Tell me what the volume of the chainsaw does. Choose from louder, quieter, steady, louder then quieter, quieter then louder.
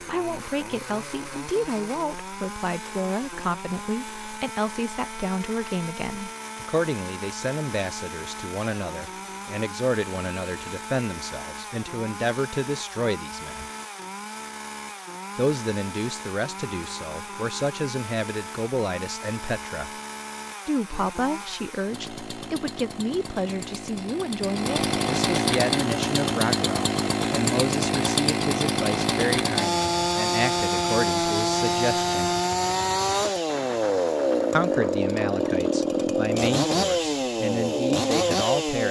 louder.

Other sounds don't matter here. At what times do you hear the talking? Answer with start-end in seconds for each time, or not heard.
0.1-13.7, 15.3-19.9, 20.6-32.3, 34.5-38.8.